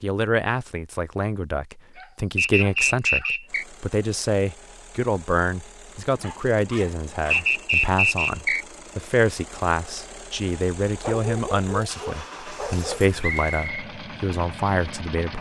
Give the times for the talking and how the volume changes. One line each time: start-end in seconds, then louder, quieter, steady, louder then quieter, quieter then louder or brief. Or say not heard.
0.0-15.3 steady.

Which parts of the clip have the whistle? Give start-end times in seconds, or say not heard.
2.4-3.6, 7.3-8.7, 13.2-13.8.